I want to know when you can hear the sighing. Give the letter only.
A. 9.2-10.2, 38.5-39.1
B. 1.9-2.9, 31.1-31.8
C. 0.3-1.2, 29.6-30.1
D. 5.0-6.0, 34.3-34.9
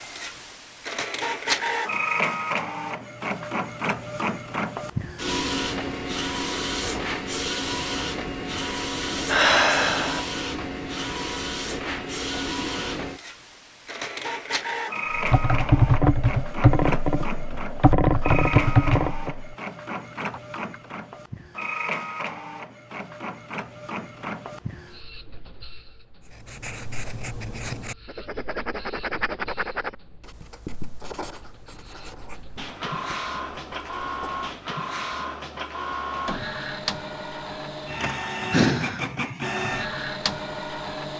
A.